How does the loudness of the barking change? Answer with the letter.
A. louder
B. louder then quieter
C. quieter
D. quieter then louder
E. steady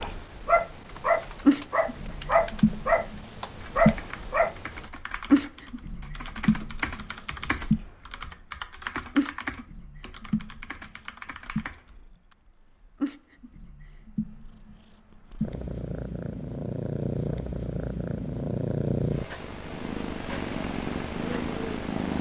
D.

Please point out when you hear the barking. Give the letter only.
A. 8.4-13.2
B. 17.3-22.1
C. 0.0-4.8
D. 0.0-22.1
C.